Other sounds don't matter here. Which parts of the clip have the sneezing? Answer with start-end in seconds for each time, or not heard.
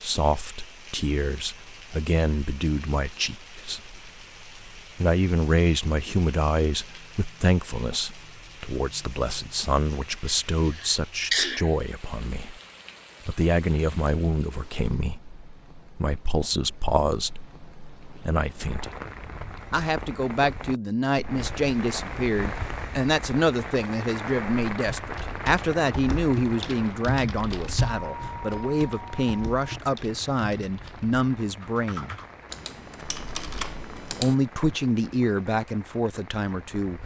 10.2-11.7.